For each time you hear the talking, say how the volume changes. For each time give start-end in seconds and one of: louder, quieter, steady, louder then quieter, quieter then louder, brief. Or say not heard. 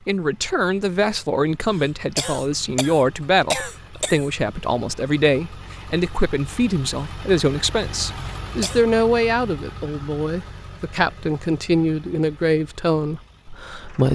0.1-14.1 steady.